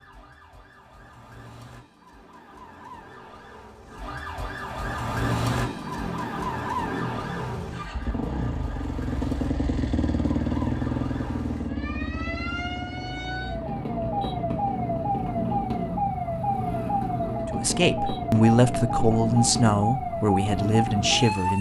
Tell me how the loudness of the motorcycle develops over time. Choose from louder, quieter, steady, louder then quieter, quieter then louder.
louder then quieter.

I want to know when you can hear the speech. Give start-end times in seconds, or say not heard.
17.5-21.5.